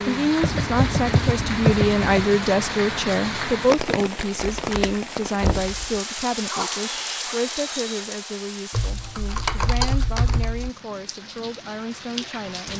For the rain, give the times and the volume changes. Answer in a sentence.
The rain can be heard from 0.0 to 12.7 s, getting quieter.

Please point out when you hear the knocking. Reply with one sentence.
The knocking can be heard from 5.4 to 5.8 s.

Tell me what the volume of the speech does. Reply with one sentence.
The volume of the speech goes down.